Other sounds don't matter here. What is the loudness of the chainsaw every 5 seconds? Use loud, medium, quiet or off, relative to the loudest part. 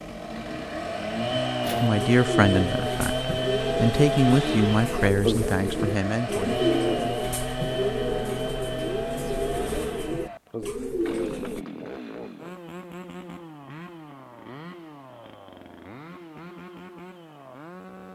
loud, loud, medium, quiet.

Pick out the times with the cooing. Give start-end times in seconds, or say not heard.
1.6-11.7.